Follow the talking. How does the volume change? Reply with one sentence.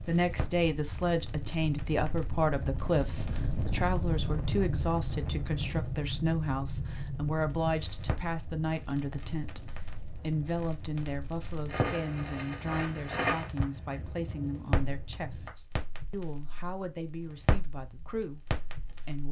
The volume of the talking goes down.